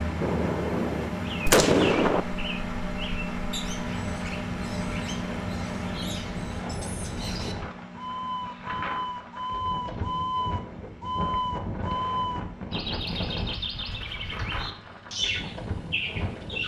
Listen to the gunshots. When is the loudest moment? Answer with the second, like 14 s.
2 s.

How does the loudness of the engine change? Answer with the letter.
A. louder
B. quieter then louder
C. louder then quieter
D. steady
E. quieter
E.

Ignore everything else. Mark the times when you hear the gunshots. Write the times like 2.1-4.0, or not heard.
0.2-2.2.